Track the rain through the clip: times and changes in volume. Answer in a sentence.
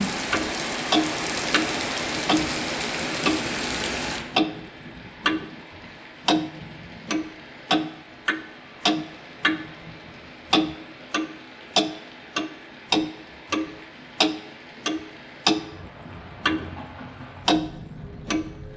You can hear the rain from 0.0 to 18.7 s, getting quieter.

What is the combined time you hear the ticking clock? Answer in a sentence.
You can hear the ticking clock for 17 seconds altogether.